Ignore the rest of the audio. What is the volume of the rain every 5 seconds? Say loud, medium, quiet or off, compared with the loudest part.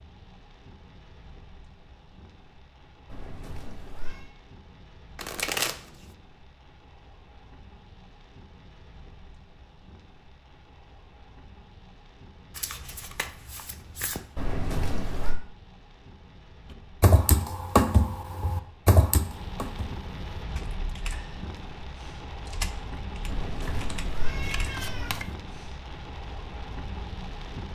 quiet, quiet, quiet, medium, loud, loud.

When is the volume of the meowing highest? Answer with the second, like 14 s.
15 s.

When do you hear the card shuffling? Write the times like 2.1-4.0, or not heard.
5.2-6.0, 12.5-14.3, 24.4-25.4.